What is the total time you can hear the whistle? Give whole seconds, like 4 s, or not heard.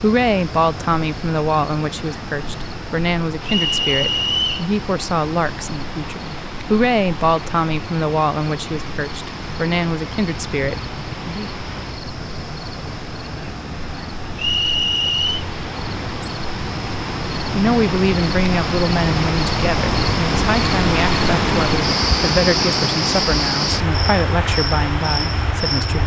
2 s.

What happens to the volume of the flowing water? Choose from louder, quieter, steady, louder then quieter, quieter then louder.
louder.